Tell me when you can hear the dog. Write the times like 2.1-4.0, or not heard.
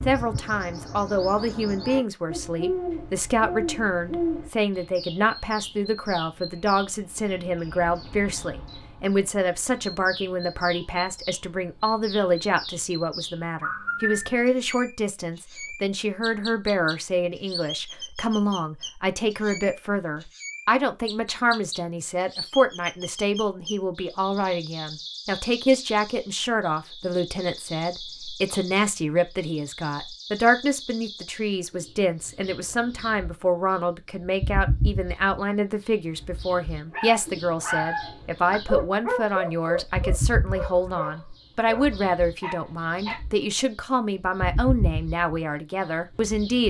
36.9-43.2.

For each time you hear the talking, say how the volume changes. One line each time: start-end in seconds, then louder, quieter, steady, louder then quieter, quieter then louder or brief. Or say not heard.
0.1-46.6 steady.